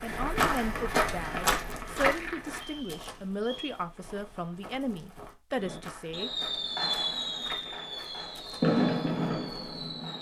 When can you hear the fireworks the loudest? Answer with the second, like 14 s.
9 s.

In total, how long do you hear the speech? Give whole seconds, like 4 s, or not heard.
6 s.